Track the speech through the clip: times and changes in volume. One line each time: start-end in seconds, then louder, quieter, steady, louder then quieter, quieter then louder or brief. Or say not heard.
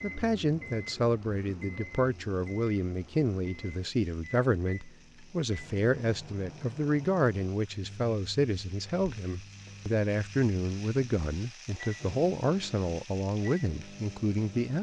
0.0-14.7 steady.